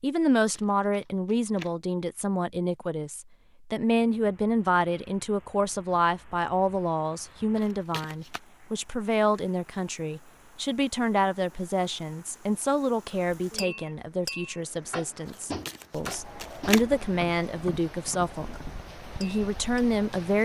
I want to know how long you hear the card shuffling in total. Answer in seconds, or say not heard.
3 s.